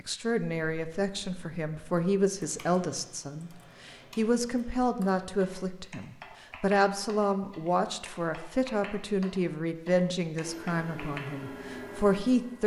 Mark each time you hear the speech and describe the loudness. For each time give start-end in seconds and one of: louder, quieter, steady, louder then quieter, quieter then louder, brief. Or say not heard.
0.0-12.6 steady.